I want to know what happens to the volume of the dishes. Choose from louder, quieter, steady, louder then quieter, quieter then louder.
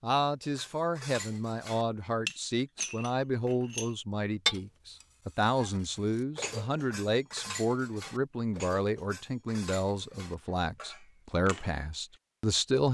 louder then quieter.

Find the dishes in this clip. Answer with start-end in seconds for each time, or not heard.
0.4-12.2.